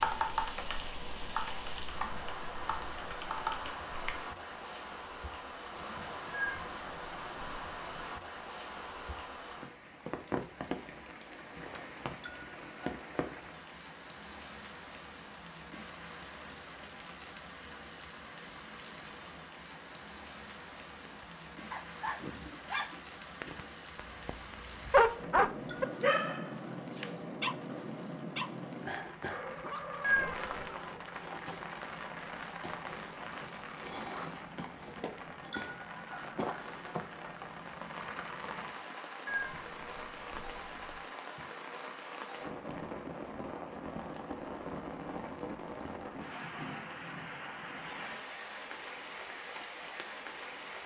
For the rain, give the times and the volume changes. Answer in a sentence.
You can hear the rain from 0.0 to 50.8 s, at a steady volume.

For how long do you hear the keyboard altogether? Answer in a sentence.
The keyboard can be heard for 4 seconds in total.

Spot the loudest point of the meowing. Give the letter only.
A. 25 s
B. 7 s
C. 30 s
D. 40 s
C.